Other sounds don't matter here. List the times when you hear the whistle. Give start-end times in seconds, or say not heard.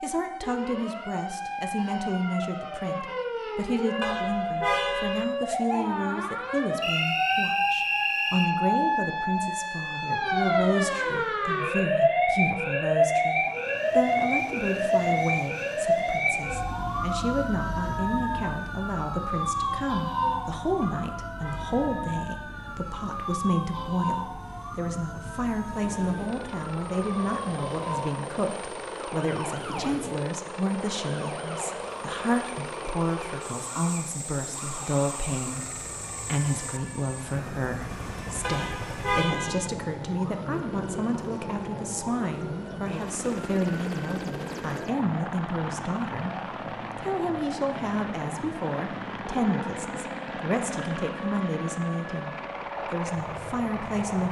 6.8-8.5.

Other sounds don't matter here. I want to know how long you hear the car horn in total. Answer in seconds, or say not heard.
4 s.